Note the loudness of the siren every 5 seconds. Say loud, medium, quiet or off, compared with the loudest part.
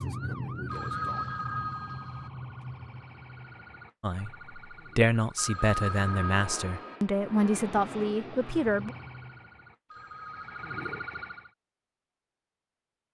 loud, medium, loud.